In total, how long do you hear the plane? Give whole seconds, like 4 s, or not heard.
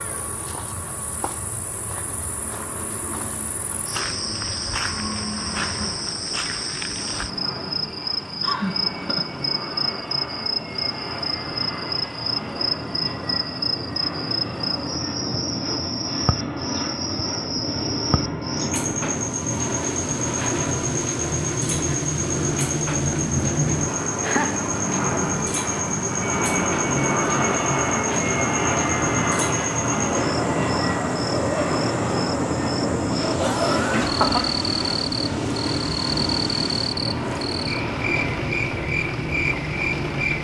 40 s.